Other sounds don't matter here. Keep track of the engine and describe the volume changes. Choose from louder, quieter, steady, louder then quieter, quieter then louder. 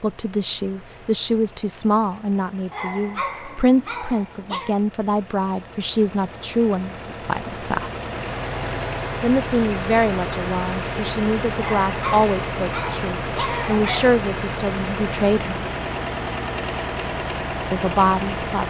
louder.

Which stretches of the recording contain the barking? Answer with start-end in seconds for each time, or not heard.
2.7-4.8, 11.6-14.2.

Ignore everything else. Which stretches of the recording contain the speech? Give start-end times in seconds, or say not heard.
0.0-7.9, 9.2-15.6, 17.7-18.6.